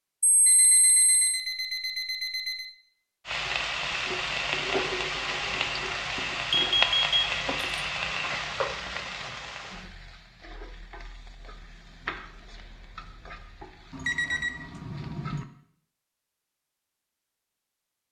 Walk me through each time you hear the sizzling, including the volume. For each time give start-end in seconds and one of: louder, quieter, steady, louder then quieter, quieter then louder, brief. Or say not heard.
3.2-15.4 quieter.